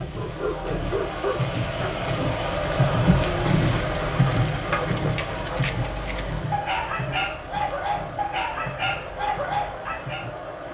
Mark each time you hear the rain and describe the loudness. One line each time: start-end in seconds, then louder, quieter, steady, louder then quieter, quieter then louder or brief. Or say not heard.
0.0-10.6 louder then quieter.